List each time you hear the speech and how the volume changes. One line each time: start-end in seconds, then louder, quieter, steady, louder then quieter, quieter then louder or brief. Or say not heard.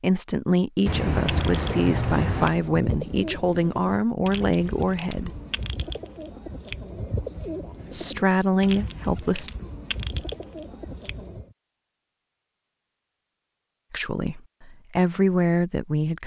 0.0-5.3 steady
7.9-9.5 brief
13.9-16.2 brief.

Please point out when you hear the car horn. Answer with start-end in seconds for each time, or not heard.
0.8-2.5.